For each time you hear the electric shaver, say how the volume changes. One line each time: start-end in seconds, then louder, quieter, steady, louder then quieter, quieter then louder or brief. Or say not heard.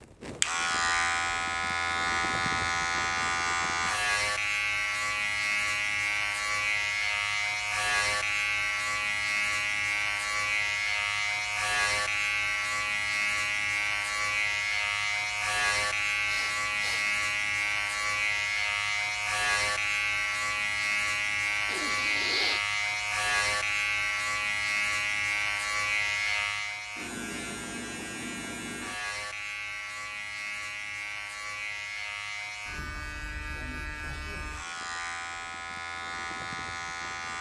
0.0-37.3 quieter.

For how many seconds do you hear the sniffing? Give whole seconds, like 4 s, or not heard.
2 s.